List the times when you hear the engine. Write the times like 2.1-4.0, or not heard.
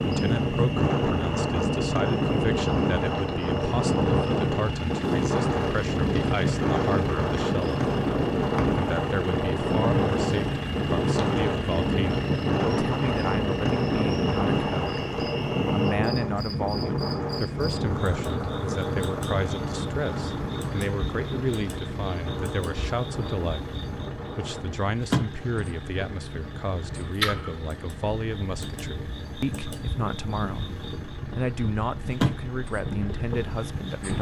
0.0-34.1.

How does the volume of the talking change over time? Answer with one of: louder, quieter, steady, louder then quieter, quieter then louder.
steady.